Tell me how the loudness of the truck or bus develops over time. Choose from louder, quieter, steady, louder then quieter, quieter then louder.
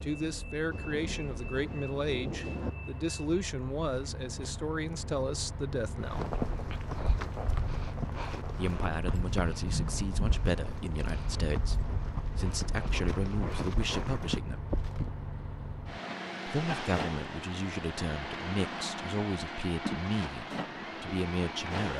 louder.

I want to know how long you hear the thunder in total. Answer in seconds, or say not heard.
2 s.